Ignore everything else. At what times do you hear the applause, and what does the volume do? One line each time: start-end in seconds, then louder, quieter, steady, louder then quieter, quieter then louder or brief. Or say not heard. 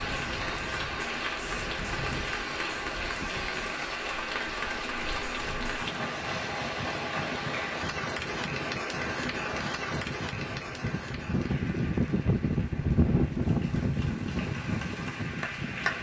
0.0-15.9 quieter.